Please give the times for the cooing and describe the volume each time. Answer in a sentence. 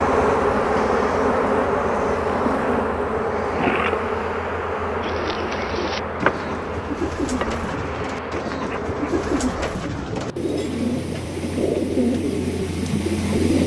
The cooing can be heard from 5.0 to 13.6 s, getting louder.